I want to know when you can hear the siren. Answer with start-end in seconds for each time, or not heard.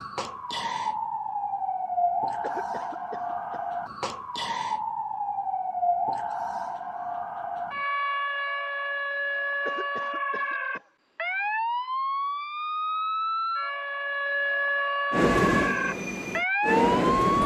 0.0-17.4.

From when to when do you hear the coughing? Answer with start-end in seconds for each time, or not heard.
2.4-3.6, 9.6-10.8.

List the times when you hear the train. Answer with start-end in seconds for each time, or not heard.
15.1-17.4.